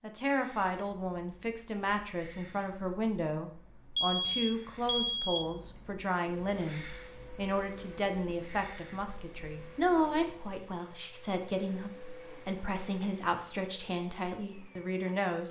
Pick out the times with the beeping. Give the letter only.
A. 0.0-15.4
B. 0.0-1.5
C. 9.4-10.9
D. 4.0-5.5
D.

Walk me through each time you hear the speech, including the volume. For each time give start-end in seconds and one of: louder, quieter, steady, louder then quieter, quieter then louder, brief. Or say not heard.
0.0-15.4 steady.